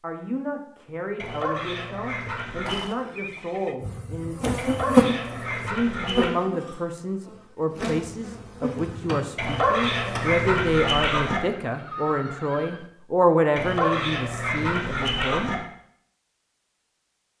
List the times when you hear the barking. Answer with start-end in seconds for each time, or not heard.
1.1-2.9, 4.5-6.3, 9.3-11.4, 13.6-15.6.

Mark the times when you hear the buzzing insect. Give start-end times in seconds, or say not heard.
3.8-10.4.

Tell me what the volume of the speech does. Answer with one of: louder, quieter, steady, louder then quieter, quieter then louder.
louder.